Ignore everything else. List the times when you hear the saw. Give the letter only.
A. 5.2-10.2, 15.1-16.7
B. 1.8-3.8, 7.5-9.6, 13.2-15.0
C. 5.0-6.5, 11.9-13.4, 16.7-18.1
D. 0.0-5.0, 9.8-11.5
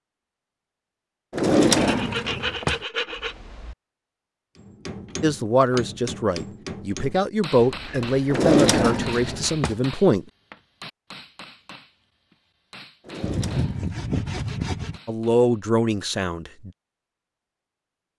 B.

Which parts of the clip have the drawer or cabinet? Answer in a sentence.
You can hear the drawer or cabinet from 1.3 to 2.8 s, from 8.3 to 9.8 s and from 13.1 to 14.5 s.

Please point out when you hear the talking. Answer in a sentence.
You can hear the talking from 5.2 to 10.2 s and from 15.1 to 16.7 s.